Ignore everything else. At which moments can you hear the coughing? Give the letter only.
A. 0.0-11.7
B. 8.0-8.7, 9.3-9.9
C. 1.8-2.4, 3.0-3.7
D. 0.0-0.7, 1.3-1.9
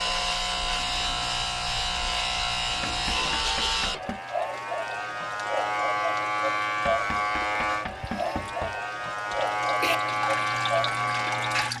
B.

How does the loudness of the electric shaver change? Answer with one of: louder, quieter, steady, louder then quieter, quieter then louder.
steady.